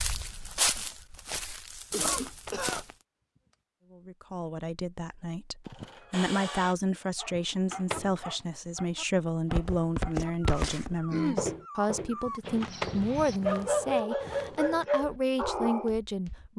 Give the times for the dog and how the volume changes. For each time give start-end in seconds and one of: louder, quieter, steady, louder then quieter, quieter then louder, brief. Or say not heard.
7.2-15.9 louder.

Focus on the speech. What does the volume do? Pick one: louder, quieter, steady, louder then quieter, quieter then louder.
steady.